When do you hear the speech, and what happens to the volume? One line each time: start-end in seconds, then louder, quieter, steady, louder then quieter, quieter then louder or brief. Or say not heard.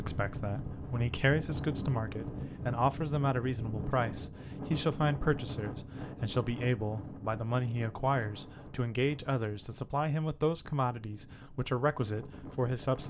0.0-13.0 steady.